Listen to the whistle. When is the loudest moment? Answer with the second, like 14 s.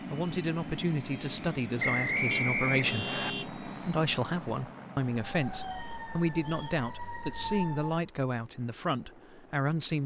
2 s.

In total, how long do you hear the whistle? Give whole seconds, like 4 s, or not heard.
3 s.